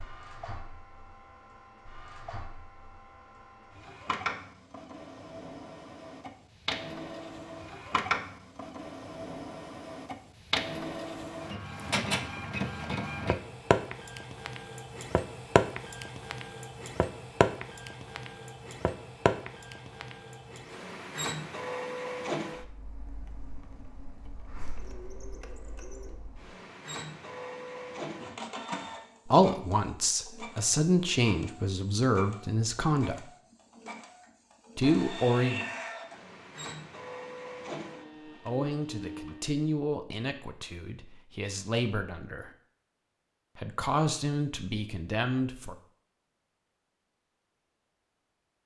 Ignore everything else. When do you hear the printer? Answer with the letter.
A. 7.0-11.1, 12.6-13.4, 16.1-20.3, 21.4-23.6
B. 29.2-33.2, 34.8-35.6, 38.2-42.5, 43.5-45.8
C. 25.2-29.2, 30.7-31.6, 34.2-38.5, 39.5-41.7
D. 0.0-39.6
D.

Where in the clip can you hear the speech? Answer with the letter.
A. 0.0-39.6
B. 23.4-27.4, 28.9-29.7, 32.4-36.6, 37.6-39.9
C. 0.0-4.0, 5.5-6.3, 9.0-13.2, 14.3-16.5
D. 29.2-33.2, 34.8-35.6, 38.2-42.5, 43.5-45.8
D.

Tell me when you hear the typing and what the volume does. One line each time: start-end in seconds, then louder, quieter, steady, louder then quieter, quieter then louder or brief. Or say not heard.
not heard.